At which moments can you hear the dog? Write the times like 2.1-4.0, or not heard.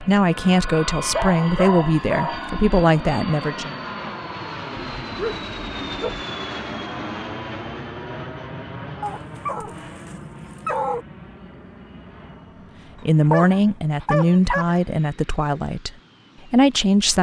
1.1-2.5, 5.0-6.2, 9.0-11.1, 13.2-14.8.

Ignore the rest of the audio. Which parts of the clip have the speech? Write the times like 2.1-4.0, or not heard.
0.0-3.8, 13.0-17.1.